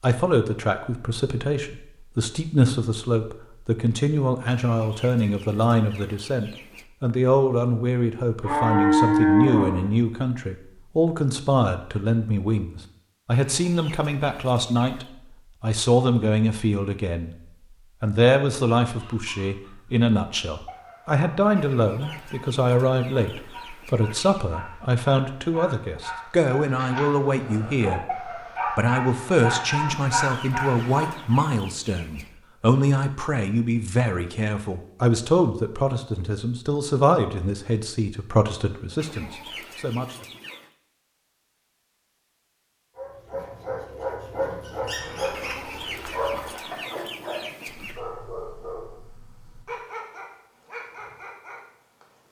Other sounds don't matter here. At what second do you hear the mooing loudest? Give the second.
9 s.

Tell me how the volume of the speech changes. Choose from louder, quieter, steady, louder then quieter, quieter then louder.
steady.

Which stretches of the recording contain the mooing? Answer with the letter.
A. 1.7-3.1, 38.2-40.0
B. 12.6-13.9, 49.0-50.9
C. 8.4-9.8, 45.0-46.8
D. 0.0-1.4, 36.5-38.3
C.